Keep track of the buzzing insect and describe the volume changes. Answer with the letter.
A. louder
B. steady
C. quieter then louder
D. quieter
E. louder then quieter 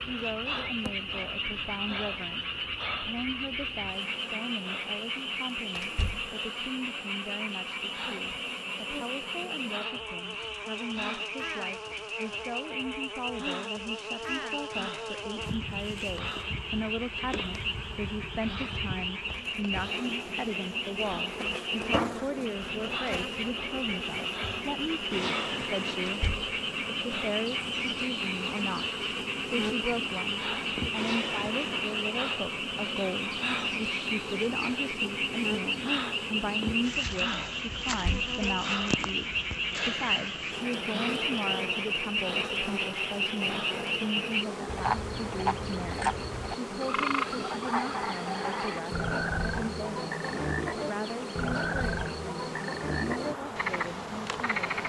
A.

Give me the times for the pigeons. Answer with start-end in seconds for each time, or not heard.
not heard.